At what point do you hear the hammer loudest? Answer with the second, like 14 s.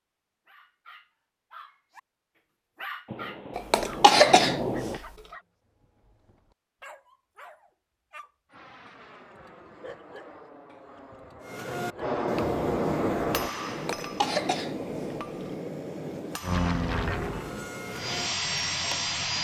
13 s.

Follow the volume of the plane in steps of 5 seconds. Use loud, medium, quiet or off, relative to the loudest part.
off, quiet, loud, loud.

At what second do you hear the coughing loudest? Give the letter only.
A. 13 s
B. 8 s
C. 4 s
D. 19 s
C.